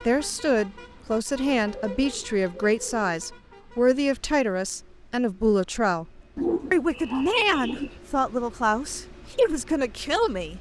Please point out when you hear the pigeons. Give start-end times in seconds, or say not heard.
1.4-3.1, 6.3-8.0.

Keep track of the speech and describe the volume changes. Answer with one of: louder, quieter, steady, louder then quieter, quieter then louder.
steady.